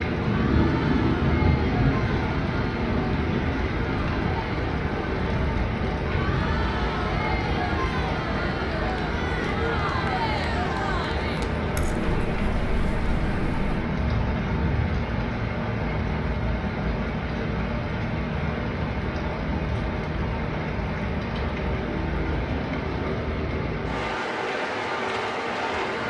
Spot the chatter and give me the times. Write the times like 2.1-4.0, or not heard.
0.2-13.8.